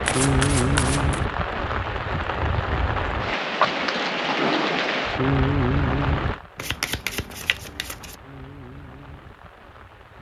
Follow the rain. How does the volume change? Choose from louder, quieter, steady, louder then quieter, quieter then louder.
quieter.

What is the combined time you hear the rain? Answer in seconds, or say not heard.
10 s.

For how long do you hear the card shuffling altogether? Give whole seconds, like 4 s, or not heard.
3 s.